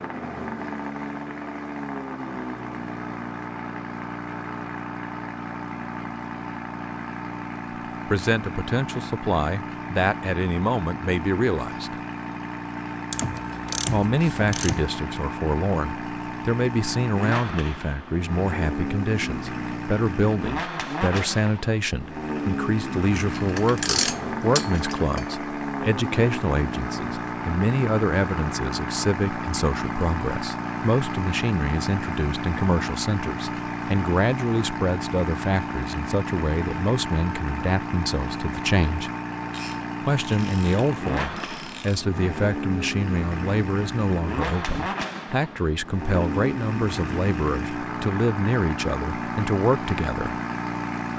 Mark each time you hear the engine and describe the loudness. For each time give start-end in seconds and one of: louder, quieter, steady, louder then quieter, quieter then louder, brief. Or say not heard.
0.0-51.1 steady.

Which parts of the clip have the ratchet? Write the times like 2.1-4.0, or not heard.
13.1-14.8, 23.3-25.2, 39.5-42.0.